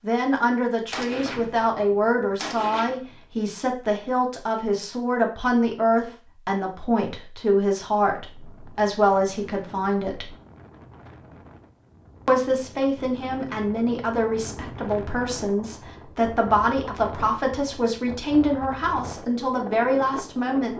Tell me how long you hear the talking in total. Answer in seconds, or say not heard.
19 s.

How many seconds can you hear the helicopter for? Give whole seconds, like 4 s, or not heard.
not heard.